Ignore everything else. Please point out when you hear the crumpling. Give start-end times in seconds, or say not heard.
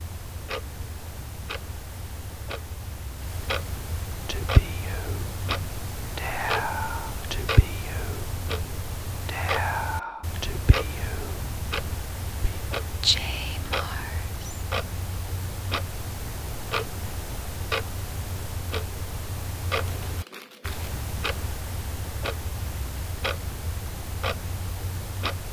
19.8-20.9.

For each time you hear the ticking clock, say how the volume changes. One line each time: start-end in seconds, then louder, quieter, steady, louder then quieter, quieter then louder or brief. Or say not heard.
0.0-25.4 steady.